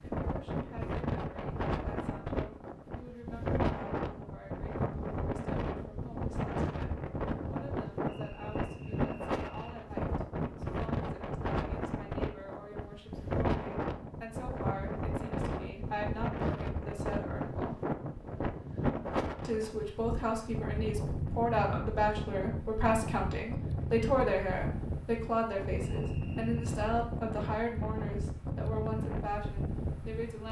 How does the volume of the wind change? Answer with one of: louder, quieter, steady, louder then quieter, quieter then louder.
steady.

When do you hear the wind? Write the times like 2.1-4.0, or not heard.
0.0-30.4.